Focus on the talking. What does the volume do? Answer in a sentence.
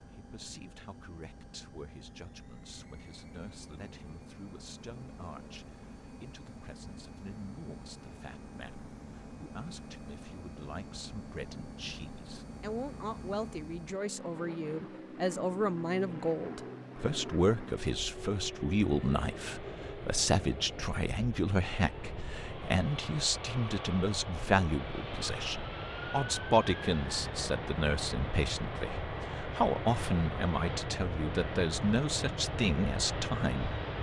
The volume of the talking goes up.